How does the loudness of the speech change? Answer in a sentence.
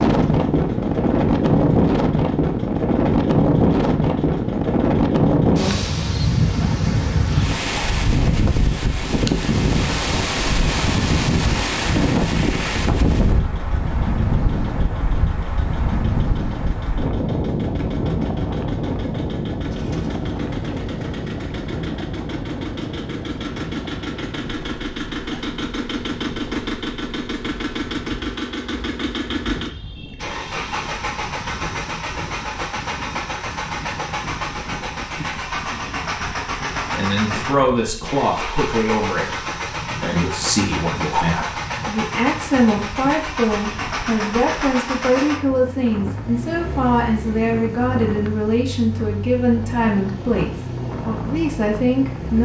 The loudness of the speech stays about the same.